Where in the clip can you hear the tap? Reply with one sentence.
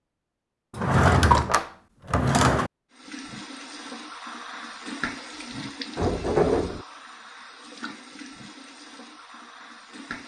You can hear the tap from 2.9 to 10.2 s.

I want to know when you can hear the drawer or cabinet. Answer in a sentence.
You can hear the drawer or cabinet from 0.8 to 2.7 s and from 6.0 to 6.8 s.